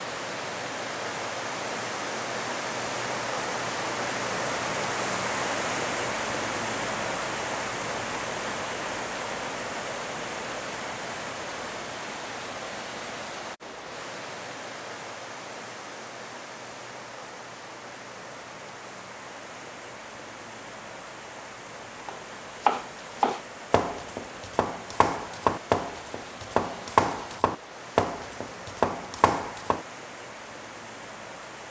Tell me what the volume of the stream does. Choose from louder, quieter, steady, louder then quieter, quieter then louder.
quieter.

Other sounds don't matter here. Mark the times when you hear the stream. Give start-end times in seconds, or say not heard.
0.0-31.6.